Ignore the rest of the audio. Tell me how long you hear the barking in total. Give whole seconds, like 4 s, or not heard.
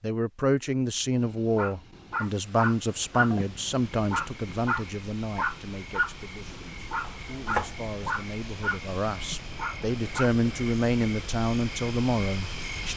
9 s.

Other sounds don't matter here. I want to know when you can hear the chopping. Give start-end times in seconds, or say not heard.
7.0-7.9.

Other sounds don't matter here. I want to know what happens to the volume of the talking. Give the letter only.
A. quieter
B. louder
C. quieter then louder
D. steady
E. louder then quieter
C.